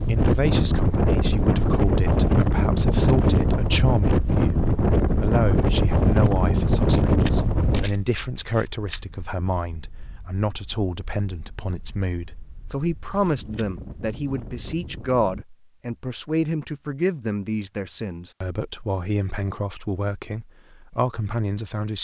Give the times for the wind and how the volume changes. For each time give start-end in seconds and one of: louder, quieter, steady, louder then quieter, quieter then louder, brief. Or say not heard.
0.0-15.4 quieter then louder.